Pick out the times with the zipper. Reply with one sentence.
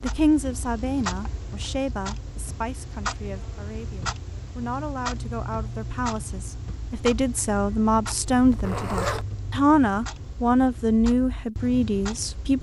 The zipper can be heard from 8.2 to 9.2 s.